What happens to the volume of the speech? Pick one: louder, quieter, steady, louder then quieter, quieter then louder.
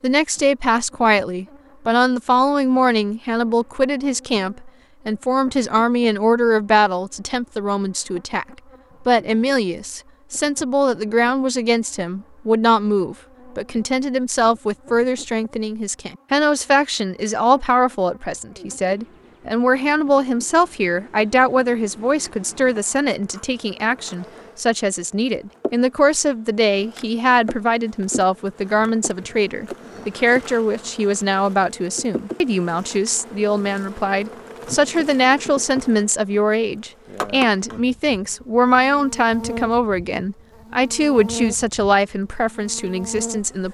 steady.